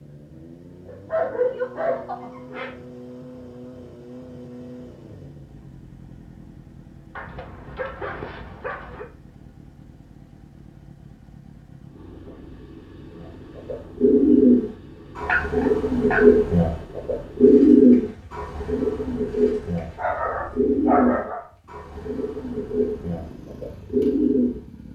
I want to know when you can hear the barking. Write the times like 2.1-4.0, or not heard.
0.8-2.7, 7.2-9.1, 15.2-16.4, 19.9-21.4.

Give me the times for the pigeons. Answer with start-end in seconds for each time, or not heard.
13.2-24.6.